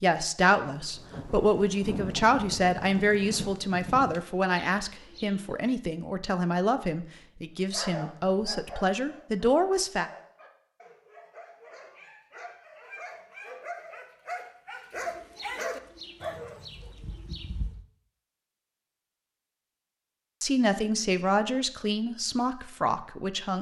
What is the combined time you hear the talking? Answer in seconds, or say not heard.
13 s.